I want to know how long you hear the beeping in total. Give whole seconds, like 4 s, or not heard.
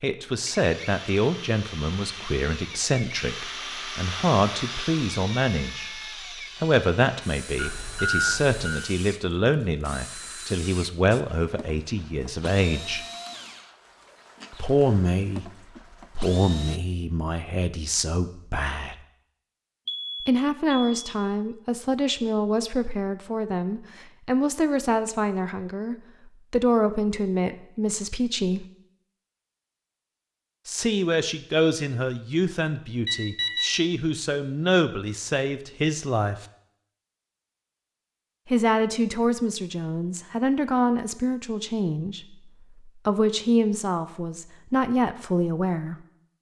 3 s.